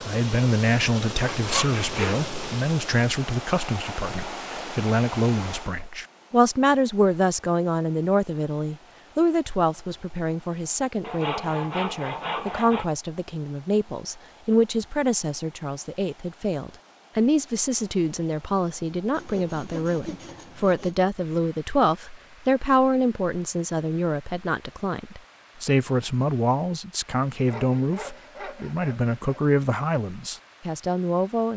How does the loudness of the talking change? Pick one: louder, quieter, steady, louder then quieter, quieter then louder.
steady.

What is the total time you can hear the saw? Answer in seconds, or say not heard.
7 s.